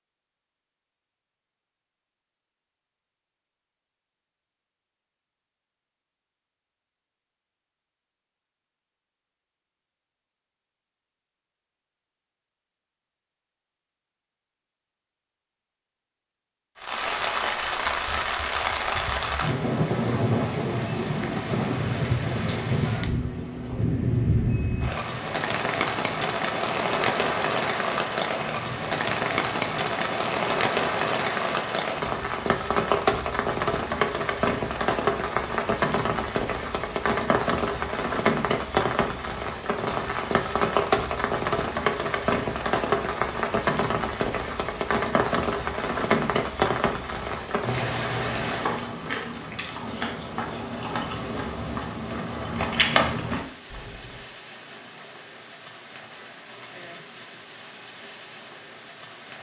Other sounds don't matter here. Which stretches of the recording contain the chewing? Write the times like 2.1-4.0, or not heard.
48.1-54.3.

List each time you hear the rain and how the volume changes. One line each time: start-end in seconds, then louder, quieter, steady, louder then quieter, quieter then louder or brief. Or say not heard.
16.8-59.3 quieter.